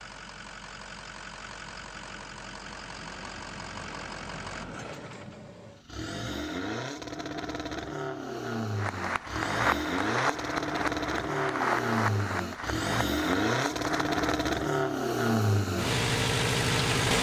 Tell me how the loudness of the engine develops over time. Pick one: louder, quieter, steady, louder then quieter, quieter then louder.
louder.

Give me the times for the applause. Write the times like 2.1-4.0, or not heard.
8.8-14.5.